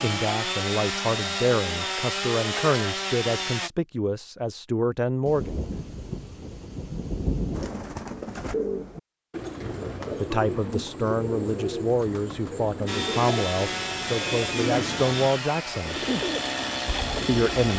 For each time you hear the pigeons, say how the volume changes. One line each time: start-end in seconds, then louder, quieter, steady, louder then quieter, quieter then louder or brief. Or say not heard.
7.5-17.4 steady.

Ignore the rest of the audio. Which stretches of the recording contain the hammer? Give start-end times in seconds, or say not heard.
not heard.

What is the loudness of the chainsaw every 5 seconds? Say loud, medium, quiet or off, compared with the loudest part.
loud, off, loud, loud.